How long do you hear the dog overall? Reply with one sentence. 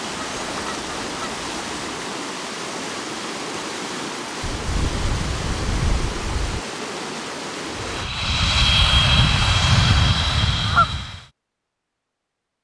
You can't hear the dog here.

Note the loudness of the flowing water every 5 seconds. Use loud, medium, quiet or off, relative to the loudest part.
loud, loud, off.